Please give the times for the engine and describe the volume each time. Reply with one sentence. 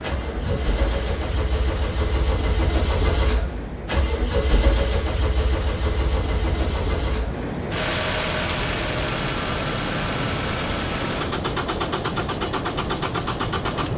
You can hear the engine from 0.0 to 13.9 s, at a steady volume.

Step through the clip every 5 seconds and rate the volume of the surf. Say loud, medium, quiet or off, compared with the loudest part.
medium, loud, loud.